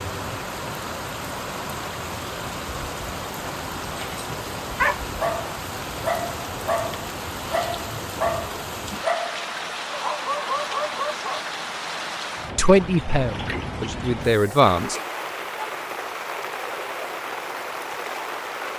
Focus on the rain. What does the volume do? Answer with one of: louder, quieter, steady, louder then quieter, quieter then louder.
steady.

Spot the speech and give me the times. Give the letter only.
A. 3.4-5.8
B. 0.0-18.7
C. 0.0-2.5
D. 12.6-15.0
D.